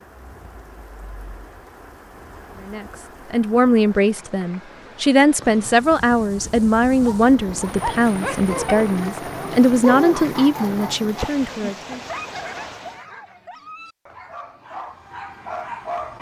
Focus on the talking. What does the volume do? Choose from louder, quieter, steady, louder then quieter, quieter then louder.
steady.